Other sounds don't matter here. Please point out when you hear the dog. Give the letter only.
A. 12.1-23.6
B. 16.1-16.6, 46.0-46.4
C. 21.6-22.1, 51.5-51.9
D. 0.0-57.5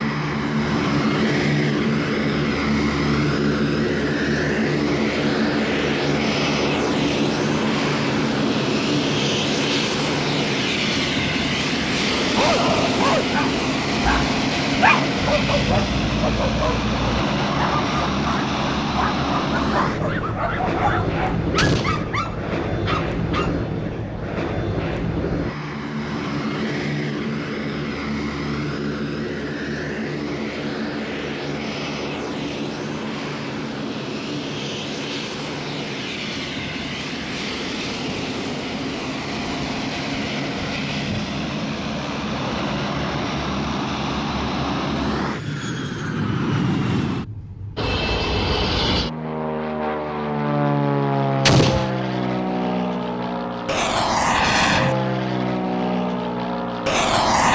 A.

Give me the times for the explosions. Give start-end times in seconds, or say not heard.
21.6-22.1, 51.5-51.9.